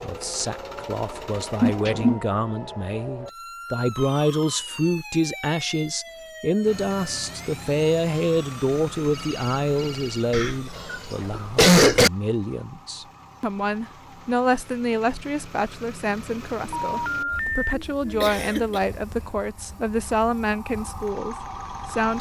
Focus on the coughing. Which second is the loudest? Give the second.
12 s.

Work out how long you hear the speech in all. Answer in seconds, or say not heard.
22 s.